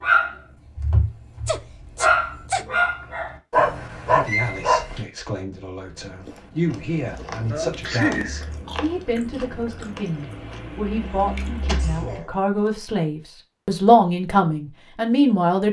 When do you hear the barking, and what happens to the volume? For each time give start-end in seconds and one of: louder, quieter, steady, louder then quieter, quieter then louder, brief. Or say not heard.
0.0-5.0 louder.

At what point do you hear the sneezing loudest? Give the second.
8 s.